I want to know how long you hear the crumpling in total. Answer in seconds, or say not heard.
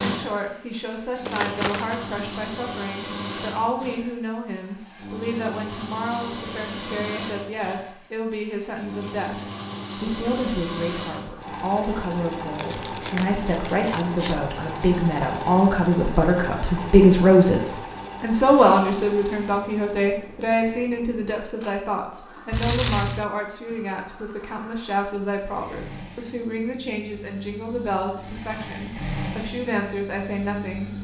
3 s.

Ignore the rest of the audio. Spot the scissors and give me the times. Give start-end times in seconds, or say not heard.
not heard.